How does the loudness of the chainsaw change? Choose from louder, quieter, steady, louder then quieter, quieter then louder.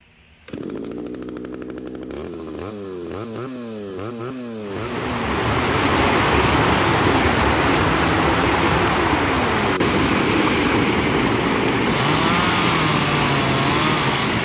louder.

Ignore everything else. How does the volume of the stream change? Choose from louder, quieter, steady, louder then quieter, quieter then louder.
steady.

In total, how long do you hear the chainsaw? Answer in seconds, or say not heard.
14 s.